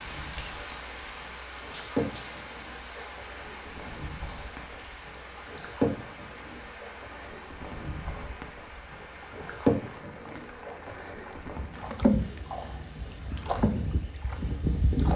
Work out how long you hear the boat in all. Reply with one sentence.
The boat can be heard for 15 seconds in total.